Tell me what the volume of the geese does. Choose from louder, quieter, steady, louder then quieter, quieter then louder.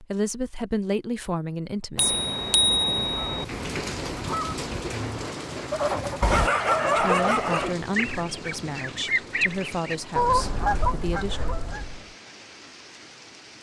louder.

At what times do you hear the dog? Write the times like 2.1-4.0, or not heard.
6.2-7.8.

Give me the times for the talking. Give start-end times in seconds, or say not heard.
0.0-2.2, 6.8-11.4.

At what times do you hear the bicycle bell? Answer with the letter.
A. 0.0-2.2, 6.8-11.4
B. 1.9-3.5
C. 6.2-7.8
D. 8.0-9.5
B.